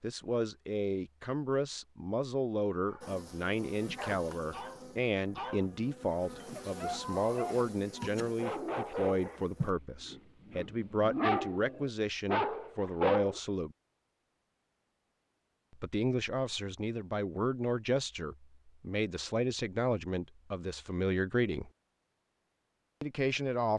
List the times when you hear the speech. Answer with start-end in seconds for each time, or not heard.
0.0-13.8, 15.7-21.7, 23.0-23.7.